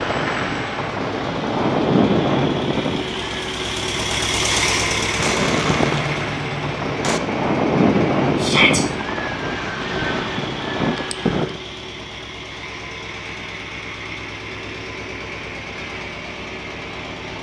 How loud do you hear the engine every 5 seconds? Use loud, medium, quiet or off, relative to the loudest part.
loud, loud, medium, medium.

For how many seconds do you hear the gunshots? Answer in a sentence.
You can hear the gunshots for 2 seconds altogether.